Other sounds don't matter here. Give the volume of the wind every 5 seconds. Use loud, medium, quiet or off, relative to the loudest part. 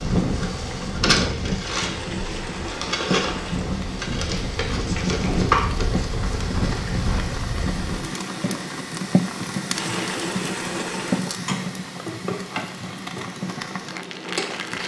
loud, loud, off.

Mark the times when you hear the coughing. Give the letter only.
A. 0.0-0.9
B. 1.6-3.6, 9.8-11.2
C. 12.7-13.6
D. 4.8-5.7
D.